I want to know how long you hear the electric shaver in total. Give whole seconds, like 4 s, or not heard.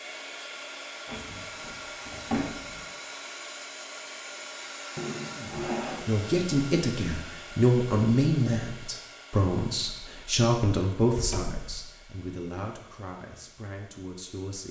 not heard.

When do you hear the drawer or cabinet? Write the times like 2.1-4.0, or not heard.
1.1-2.9, 5.0-6.1, 11.1-11.8.